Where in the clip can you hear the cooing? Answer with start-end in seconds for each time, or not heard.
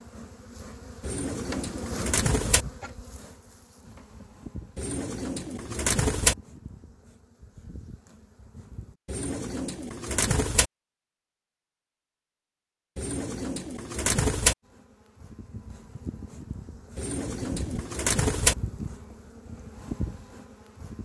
1.0-2.6, 4.8-6.3, 9.1-10.7, 12.9-14.6, 16.9-18.6.